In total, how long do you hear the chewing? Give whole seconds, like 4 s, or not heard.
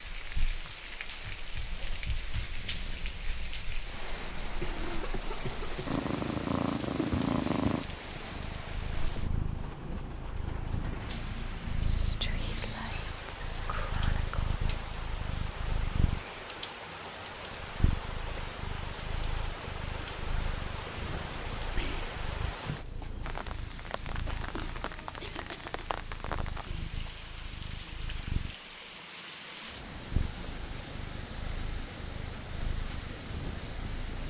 not heard.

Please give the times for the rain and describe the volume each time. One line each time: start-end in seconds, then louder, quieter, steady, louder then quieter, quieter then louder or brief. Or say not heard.
0.0-34.2 steady.